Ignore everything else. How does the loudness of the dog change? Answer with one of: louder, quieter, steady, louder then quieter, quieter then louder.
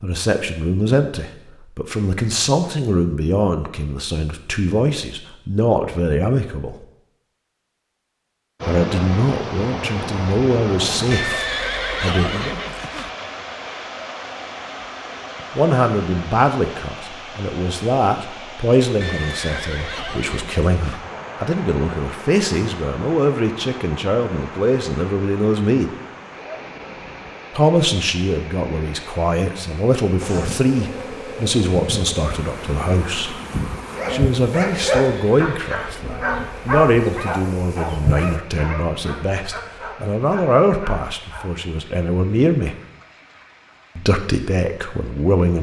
quieter.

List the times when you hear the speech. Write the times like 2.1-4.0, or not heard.
0.0-6.8, 8.7-12.6, 15.6-25.9, 27.6-33.4, 34.1-42.8, 44.0-45.5.